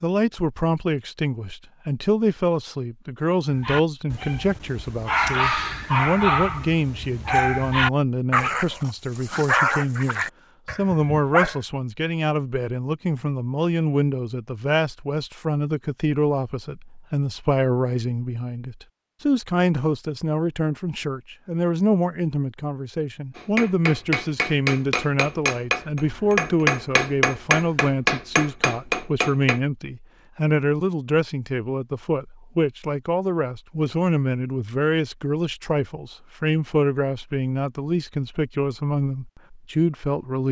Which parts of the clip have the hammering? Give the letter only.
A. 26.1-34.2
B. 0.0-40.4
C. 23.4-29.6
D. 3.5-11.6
C.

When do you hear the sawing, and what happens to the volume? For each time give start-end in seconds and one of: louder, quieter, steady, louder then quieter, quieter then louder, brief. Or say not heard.
not heard.